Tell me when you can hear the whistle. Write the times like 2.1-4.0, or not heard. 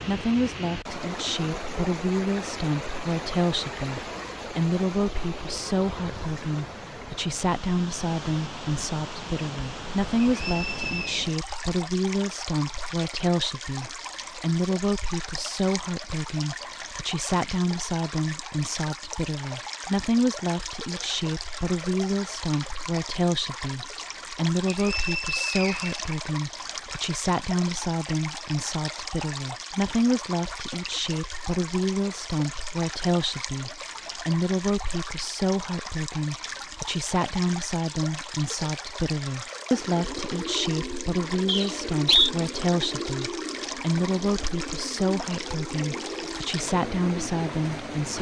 10.2-11.2, 24.7-25.9, 41.5-42.3.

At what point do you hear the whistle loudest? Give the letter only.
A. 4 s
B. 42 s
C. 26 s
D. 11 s
B.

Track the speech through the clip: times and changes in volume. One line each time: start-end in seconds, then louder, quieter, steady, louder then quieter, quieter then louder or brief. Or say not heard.
0.0-48.1 steady.